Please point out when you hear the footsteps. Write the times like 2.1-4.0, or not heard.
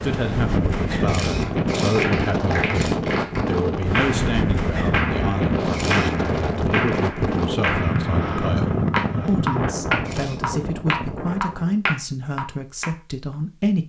not heard.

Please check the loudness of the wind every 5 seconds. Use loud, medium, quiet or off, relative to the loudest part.
loud, loud, medium.